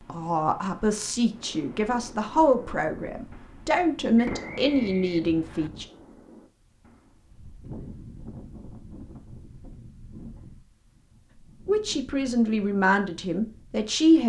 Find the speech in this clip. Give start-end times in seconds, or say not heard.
0.1-5.8, 11.7-14.2.